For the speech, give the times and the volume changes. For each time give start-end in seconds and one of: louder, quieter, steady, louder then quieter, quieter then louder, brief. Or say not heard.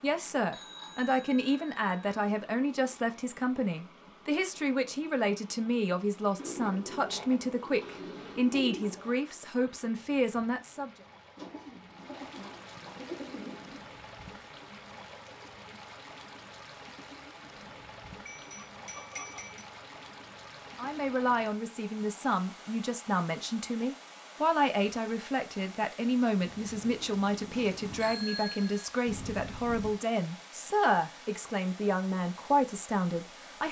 0.0-10.9 steady
20.8-33.6 steady.